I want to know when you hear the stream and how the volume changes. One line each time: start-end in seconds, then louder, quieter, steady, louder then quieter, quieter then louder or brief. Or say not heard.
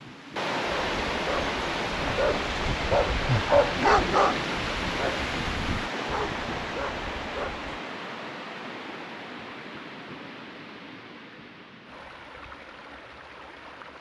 0.0-13.9 quieter.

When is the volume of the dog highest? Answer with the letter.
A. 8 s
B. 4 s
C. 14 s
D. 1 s
B.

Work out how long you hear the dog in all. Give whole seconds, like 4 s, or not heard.
7 s.